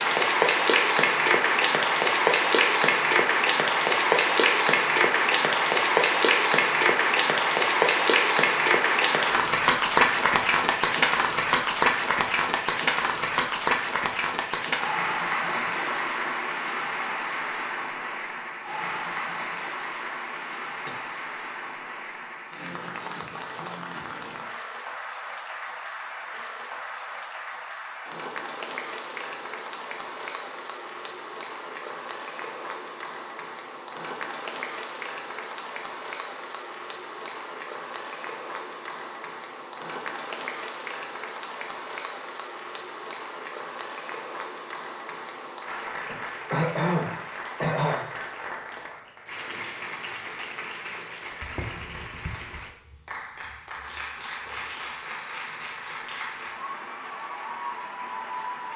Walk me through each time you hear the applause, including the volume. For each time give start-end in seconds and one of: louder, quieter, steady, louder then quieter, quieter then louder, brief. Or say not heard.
0.0-58.7 quieter.